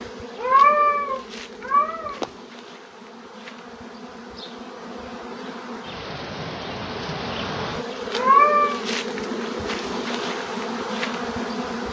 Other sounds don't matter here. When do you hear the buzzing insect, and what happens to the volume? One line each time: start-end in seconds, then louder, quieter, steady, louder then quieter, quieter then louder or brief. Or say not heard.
0.0-11.8 louder.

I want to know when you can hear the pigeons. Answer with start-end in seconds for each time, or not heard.
not heard.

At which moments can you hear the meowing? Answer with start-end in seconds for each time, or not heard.
0.3-2.3, 8.1-8.8.